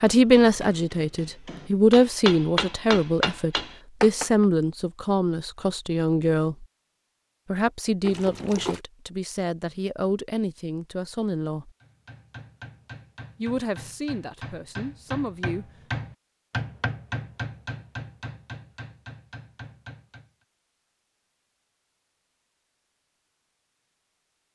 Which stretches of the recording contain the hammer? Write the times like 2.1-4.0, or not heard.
0.1-4.5, 11.8-20.3.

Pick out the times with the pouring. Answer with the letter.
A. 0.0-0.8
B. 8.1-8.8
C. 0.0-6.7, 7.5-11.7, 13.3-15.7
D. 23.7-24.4
B.